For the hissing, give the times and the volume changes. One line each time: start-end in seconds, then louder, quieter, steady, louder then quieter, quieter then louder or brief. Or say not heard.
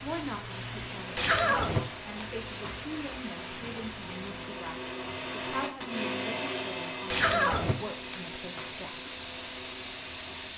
0.0-10.5 quieter then louder.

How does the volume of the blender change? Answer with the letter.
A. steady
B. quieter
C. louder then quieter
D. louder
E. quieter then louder
C.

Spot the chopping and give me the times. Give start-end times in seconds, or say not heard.
not heard.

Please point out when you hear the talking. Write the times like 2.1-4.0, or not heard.
0.0-9.0.